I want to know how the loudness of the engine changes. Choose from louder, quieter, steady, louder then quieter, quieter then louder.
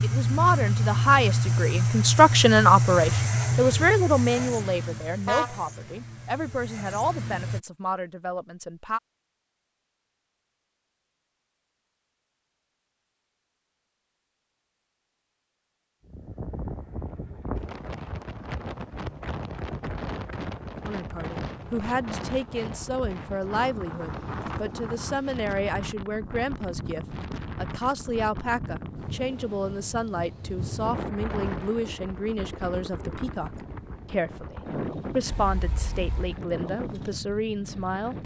quieter.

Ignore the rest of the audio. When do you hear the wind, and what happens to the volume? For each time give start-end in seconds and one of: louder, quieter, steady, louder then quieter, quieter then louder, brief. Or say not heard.
16.1-38.2 steady.